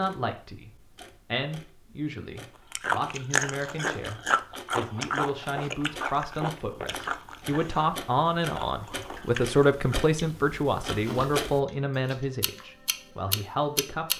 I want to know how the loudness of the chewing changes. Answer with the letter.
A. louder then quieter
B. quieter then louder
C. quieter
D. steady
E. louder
C.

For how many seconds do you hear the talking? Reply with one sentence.
The talking can be heard for 14 seconds in total.